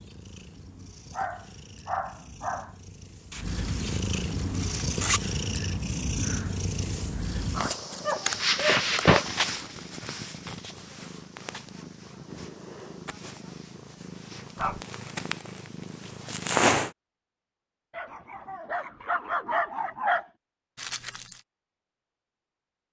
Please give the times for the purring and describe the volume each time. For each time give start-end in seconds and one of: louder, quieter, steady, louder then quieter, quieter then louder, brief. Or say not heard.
0.0-16.9 louder then quieter.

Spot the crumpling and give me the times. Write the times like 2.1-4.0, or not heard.
3.3-5.2, 7.9-9.8, 20.8-21.4.